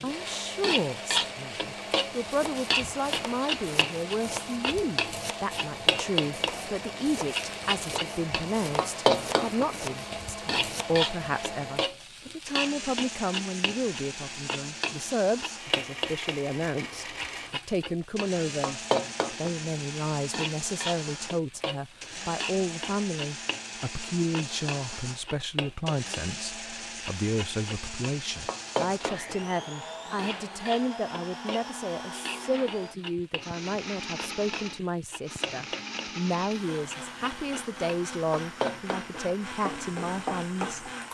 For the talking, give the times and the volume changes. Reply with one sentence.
The talking can be heard from 0.0 to 40.9 s, at a steady volume.